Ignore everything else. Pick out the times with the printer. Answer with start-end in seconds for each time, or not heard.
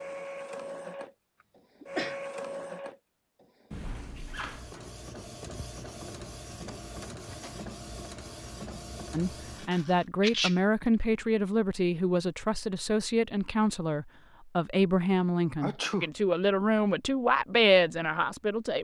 0.0-10.1.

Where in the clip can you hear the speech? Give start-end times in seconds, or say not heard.
9.1-18.8.